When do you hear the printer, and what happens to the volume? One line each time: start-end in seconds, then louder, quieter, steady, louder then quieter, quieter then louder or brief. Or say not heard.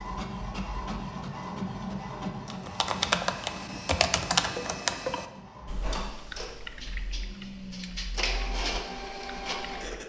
0.0-10.0 quieter then louder.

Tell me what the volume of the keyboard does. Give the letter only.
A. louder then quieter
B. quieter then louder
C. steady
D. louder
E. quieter
E.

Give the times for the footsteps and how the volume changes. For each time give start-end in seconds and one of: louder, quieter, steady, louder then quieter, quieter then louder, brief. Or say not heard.
not heard.